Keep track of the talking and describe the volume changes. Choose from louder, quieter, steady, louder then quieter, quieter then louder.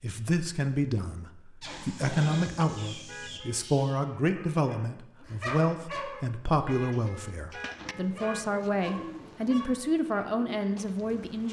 steady.